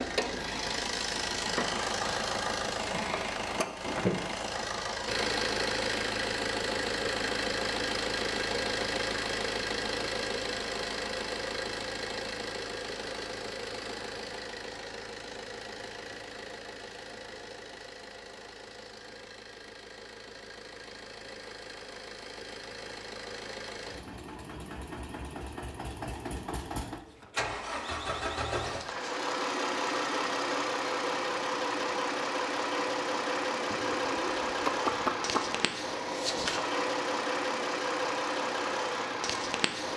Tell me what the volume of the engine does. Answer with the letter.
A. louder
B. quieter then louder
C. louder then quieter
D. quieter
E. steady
B.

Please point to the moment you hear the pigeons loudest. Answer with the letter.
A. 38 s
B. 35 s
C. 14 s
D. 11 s
B.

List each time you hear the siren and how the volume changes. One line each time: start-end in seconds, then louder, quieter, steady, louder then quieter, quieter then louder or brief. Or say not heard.
not heard.